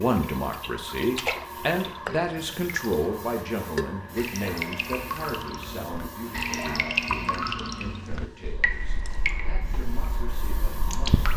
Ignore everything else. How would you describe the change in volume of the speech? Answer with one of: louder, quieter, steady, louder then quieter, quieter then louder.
quieter.